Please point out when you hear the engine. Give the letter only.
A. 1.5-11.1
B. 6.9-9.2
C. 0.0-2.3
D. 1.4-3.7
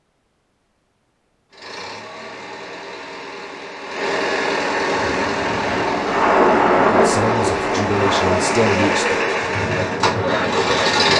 A.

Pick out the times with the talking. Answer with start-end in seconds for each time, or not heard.
6.9-9.2.